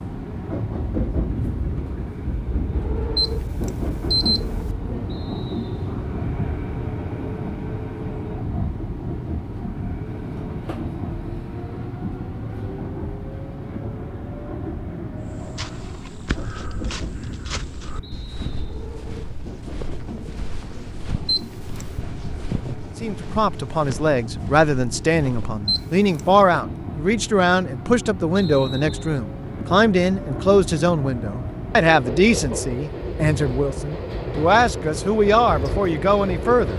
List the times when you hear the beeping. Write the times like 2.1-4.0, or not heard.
3.1-4.4, 21.2-21.9, 25.6-26.2.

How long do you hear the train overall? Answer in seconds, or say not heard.
37 s.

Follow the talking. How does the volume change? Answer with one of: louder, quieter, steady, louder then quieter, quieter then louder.
steady.